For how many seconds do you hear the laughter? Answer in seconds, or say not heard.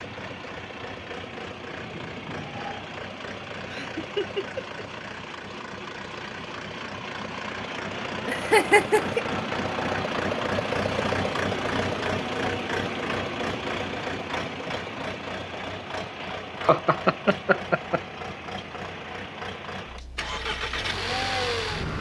4 s.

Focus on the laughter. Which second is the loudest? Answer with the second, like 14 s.
9 s.